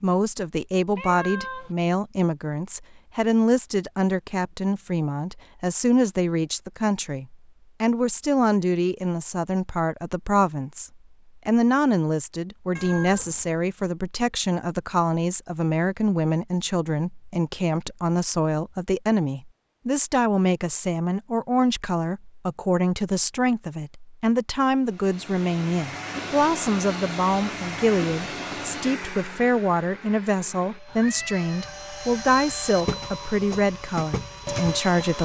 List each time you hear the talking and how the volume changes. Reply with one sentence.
The talking can be heard from 0.0 to 35.2 s, at a steady volume.